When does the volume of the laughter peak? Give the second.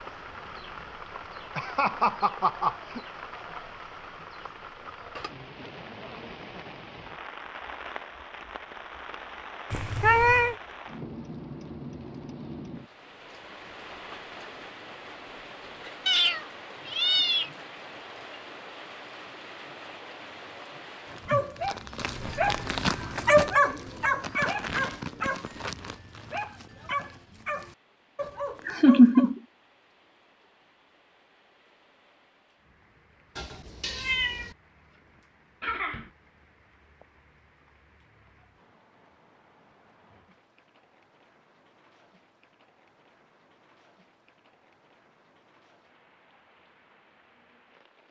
29 s.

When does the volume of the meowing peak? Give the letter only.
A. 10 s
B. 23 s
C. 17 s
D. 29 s
A.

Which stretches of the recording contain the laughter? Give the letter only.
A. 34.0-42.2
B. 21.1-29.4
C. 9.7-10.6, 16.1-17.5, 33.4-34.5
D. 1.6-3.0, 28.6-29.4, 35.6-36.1
D.